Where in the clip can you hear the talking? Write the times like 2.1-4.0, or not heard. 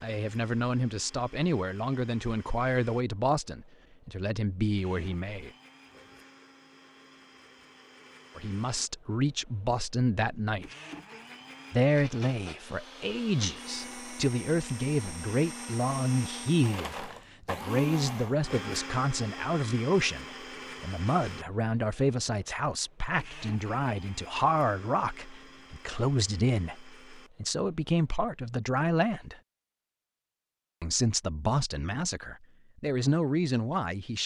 0.0-5.5, 8.3-10.8, 11.7-29.4, 30.8-34.2.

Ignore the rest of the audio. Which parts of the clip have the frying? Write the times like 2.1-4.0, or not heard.
not heard.